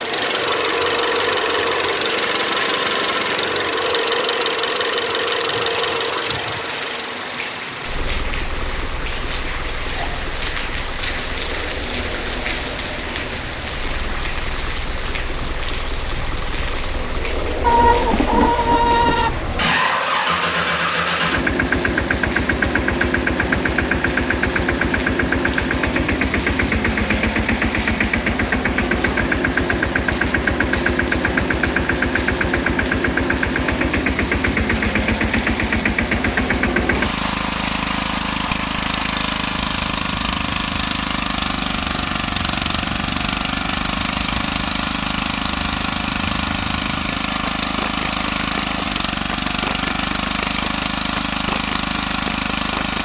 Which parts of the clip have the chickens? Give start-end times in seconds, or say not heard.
17.6-19.6.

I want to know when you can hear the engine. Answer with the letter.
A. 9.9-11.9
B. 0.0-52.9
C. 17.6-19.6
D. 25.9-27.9
B.